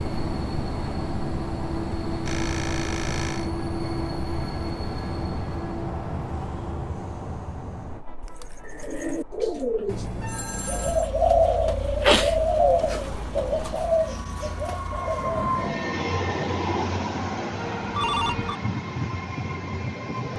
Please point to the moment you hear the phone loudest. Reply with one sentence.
The volume of the phone peaks at 18 seconds.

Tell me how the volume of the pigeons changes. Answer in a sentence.
The loudness of the pigeons goes up, then down.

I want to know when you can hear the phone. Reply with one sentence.
The phone can be heard from 2.2 to 3.5 s, from 9.8 to 11.1 s and from 17.6 to 18.6 s.